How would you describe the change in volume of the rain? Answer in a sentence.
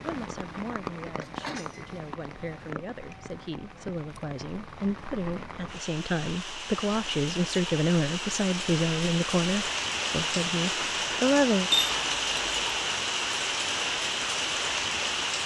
The volume of the rain goes up.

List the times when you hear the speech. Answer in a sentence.
You can hear the speech from 0.0 to 11.7 s.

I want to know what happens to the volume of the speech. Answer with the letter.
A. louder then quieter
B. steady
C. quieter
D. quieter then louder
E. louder
E.